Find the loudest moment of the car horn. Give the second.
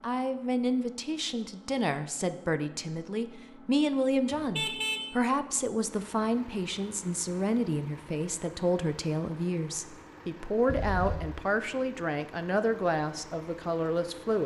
5 s.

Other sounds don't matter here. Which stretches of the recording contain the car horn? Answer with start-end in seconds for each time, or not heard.
4.3-5.0, 10.7-11.3.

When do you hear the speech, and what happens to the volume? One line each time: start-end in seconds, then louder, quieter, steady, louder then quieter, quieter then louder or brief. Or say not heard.
0.0-14.4 steady.